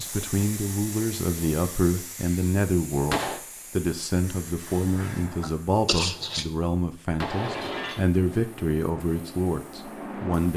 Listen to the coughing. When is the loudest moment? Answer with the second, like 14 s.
6 s.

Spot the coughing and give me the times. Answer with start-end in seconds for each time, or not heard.
4.7-6.5.